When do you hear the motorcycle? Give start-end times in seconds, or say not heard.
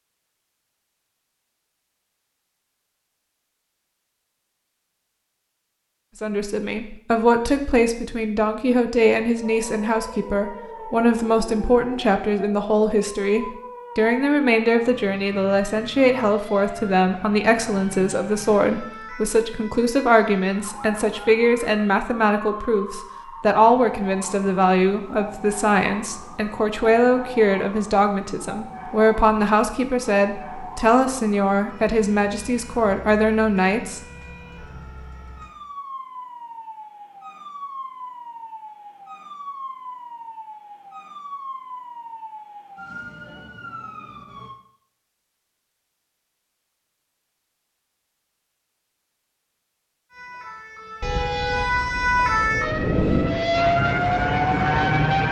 52.3-55.2.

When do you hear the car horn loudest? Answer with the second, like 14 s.
51 s.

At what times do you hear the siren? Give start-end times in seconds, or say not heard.
9.3-44.5, 50.1-55.2.